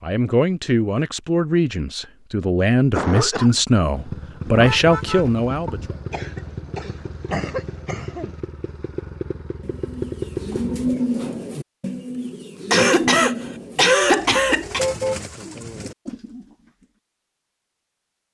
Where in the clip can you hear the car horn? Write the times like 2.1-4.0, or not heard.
4.5-6.0, 14.2-15.2.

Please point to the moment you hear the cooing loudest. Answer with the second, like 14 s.
11 s.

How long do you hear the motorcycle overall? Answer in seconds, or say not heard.
7 s.